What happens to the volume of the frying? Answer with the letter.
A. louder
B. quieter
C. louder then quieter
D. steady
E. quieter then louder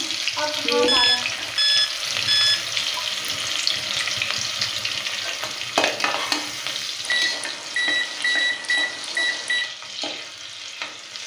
B.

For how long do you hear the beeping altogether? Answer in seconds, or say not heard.
5 s.